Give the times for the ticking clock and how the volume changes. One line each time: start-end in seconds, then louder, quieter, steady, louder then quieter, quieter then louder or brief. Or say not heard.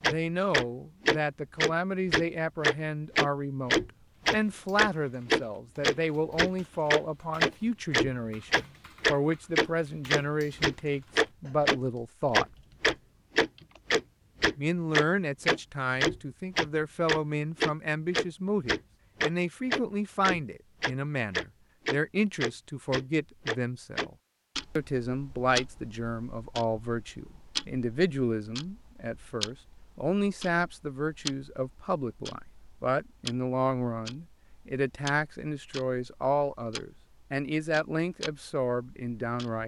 0.0-39.6 quieter.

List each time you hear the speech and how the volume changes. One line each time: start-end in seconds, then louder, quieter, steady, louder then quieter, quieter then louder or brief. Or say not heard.
0.0-12.4 steady
14.6-24.1 steady
24.8-39.6 steady.